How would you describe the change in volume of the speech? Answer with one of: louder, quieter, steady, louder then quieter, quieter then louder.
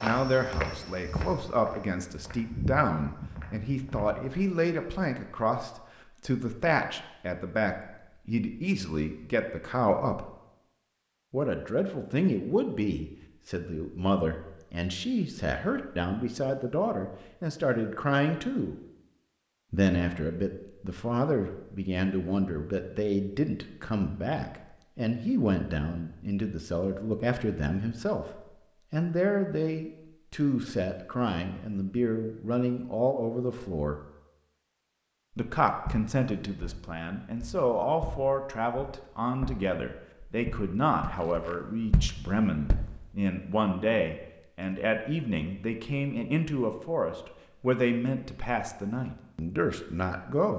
steady.